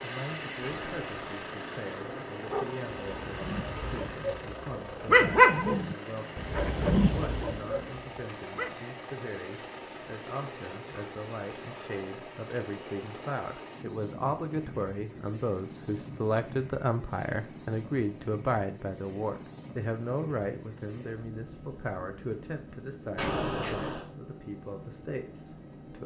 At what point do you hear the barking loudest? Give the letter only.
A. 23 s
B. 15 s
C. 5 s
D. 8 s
C.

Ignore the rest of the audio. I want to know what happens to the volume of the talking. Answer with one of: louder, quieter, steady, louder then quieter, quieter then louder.
louder then quieter.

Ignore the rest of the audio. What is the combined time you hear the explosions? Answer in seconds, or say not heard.
2 s.